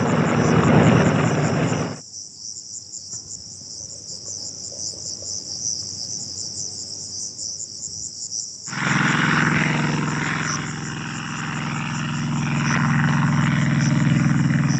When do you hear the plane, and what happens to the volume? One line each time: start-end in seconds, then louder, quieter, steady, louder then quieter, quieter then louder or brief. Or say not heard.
0.0-2.0 brief
8.7-14.7 quieter then louder.